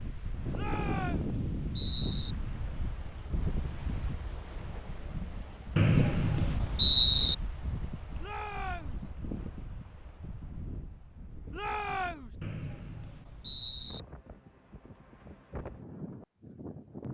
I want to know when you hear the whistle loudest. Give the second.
7 s.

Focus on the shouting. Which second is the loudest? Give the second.
12 s.